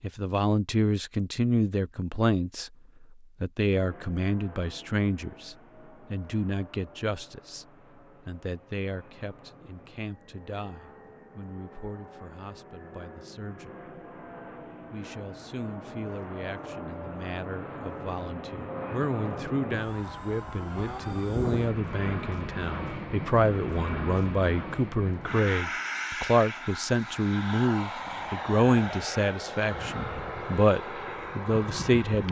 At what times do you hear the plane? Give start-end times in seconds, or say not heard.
3.7-32.2.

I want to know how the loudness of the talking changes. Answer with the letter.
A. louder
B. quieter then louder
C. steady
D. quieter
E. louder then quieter
B.